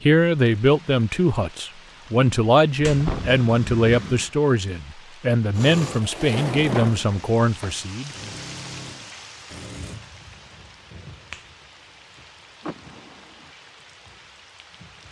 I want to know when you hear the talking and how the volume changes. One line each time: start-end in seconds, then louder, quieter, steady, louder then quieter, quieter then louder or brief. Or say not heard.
0.0-8.1 steady.